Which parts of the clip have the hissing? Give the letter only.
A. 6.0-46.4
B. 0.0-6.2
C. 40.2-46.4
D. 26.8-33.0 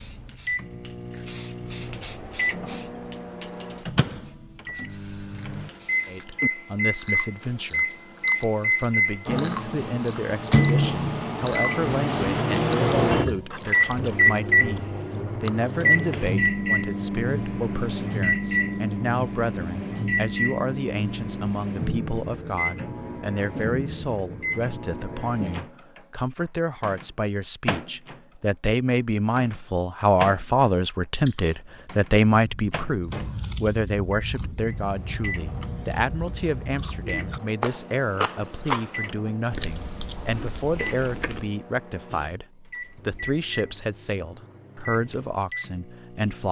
B.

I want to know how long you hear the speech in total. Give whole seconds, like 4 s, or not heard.
40 s.